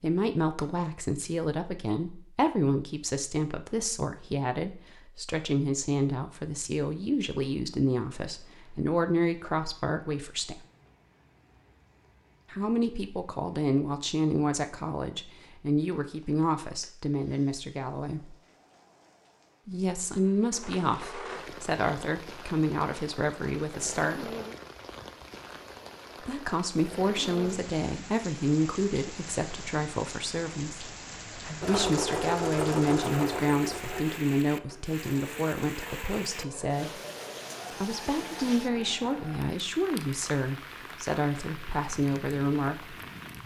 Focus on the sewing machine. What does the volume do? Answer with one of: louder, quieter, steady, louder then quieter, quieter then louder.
quieter.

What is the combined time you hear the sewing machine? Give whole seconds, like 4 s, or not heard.
8 s.